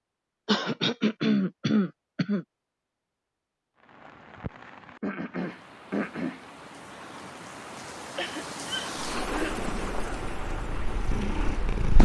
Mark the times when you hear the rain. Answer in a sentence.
The rain can be heard from 3.8 to 12.0 s.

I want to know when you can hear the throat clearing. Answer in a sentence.
You can hear the throat clearing from 0.5 to 2.5 s, from 5.0 to 6.4 s and from 8.2 to 9.6 s.